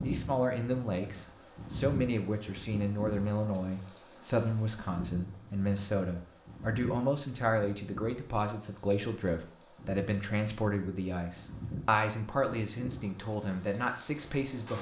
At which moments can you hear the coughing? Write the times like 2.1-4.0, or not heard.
not heard.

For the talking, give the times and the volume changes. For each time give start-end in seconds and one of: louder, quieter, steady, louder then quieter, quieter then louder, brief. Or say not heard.
0.0-14.7 steady.